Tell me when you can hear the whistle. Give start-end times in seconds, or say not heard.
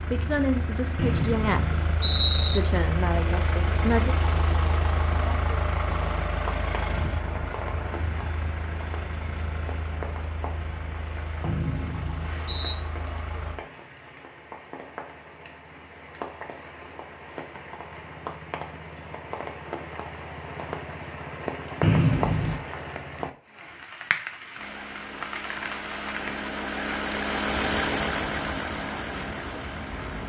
0.9-2.6, 11.4-12.8, 21.8-22.6.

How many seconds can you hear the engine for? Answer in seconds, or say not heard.
19 s.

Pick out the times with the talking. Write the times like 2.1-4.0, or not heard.
0.0-4.2.